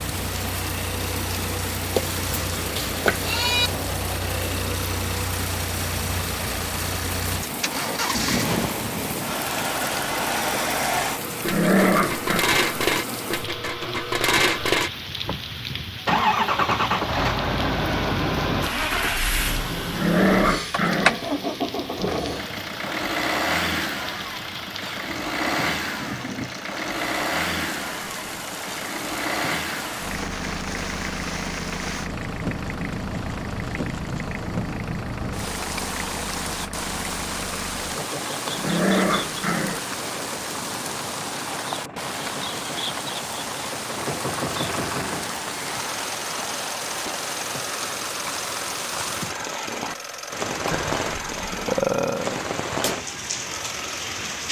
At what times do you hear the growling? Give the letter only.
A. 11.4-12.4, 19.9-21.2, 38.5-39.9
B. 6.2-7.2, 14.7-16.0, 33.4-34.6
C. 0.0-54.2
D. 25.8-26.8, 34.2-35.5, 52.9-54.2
A.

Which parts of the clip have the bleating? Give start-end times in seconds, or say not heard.
1.9-3.7, 50.7-52.5.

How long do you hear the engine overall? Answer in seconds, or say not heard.
54 s.